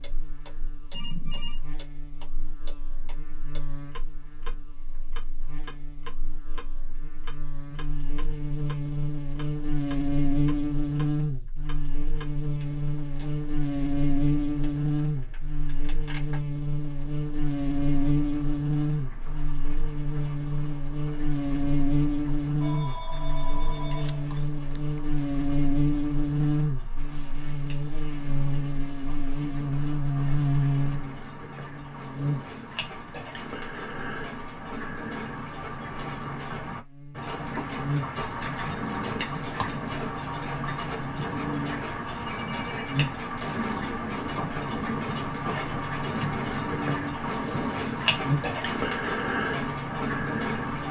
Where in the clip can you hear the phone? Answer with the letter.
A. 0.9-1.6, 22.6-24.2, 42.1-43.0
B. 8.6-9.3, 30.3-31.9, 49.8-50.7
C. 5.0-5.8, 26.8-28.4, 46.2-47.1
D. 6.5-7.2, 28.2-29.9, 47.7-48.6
A.